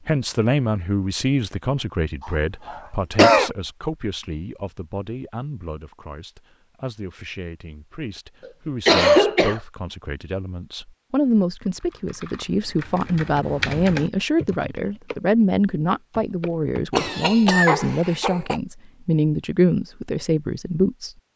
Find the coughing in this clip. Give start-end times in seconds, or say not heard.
2.2-3.5, 8.4-9.6, 16.9-18.6.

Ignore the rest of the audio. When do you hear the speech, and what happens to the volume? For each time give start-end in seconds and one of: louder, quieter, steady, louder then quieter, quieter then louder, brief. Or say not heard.
0.1-21.1 quieter then louder.